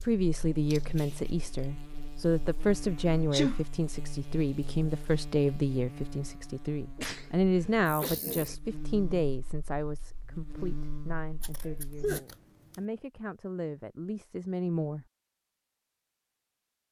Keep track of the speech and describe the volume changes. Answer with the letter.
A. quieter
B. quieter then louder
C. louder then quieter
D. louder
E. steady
A.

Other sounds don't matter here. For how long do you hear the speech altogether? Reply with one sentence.
You can hear the speech for 15 seconds altogether.